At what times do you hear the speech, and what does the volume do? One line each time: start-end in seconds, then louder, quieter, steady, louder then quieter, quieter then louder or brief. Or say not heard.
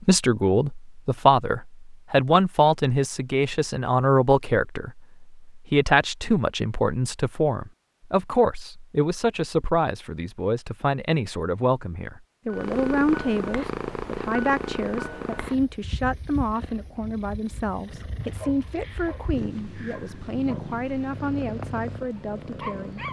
0.0-23.0 quieter.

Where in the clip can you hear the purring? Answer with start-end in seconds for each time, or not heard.
12.5-23.0.